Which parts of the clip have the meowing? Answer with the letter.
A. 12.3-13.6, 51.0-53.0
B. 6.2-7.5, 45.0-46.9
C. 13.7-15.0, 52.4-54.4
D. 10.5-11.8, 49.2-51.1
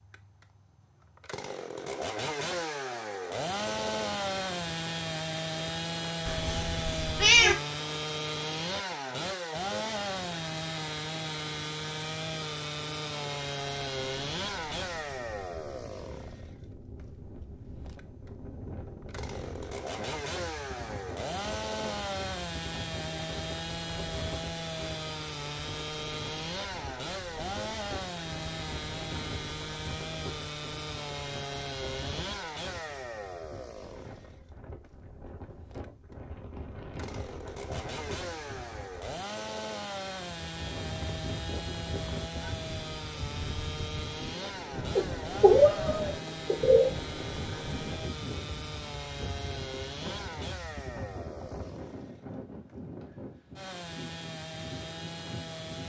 B.